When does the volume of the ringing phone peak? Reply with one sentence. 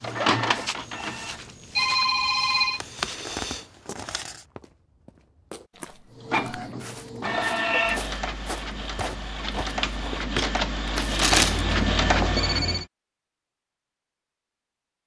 The loudest moment of the ringing phone is at 2 seconds.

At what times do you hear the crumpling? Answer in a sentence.
The crumpling can be heard from 2.8 to 4.4 s and from 10.9 to 11.7 s.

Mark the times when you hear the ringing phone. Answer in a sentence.
You can hear the ringing phone from 1.8 to 2.8 s and from 11.3 to 12.8 s.